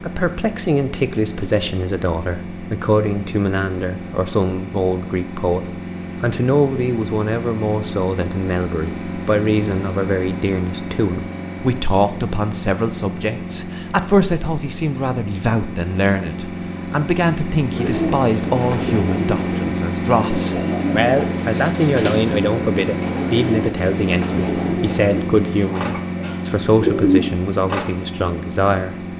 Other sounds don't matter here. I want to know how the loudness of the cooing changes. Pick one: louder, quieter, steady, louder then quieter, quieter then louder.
louder.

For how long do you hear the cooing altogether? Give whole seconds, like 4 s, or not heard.
10 s.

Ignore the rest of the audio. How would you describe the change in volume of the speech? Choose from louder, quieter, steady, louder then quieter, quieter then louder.
steady.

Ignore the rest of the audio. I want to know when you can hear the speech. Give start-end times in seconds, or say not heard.
0.0-28.9.